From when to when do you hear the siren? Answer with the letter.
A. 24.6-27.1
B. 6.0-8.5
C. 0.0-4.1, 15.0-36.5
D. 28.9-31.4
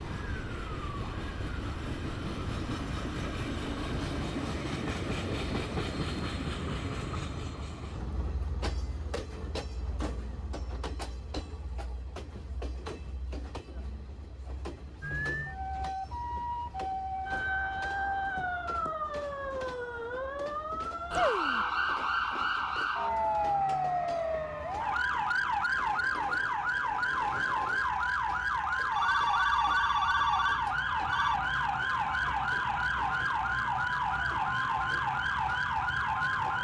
C.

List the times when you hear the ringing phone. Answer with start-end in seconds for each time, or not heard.
28.9-31.4.